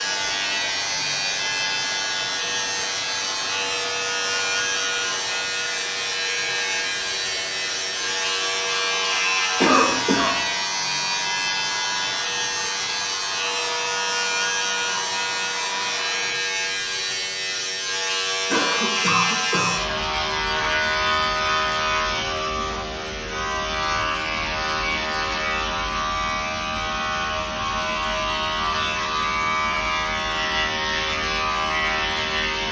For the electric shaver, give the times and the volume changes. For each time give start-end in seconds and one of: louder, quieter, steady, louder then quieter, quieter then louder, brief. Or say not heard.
0.0-32.6 steady.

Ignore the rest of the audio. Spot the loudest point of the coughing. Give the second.
10 s.